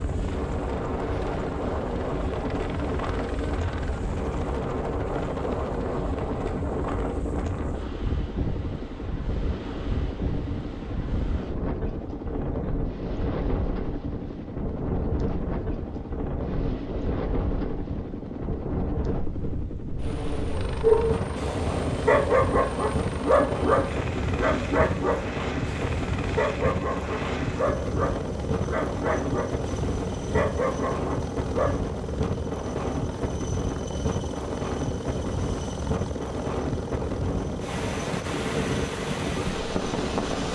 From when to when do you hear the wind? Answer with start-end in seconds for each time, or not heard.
0.0-40.5.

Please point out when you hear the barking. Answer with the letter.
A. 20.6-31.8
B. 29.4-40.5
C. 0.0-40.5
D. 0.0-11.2
A.